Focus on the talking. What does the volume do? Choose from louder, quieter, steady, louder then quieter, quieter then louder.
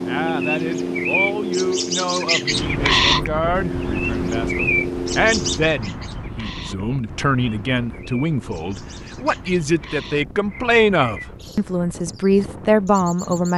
louder.